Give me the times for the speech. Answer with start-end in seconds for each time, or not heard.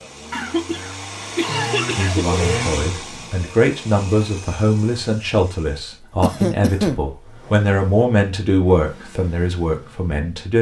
1.9-10.5.